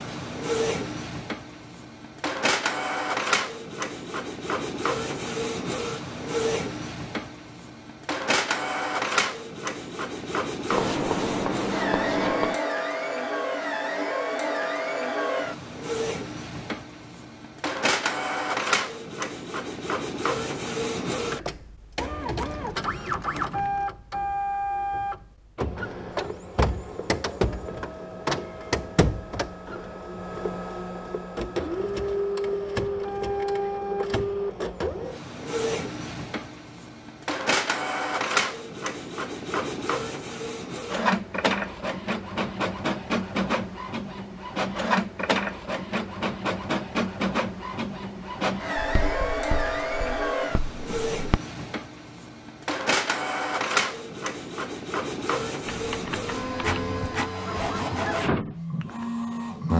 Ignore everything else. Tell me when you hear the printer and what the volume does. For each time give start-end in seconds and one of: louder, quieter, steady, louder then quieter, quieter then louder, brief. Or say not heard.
0.0-59.7 steady.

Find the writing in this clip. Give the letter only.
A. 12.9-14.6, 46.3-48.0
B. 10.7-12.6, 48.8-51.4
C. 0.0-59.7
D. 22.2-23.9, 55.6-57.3
B.